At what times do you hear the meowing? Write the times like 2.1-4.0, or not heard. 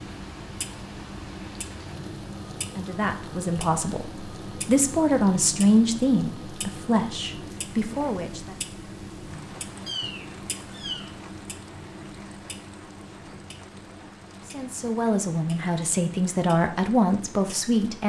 9.8-11.1.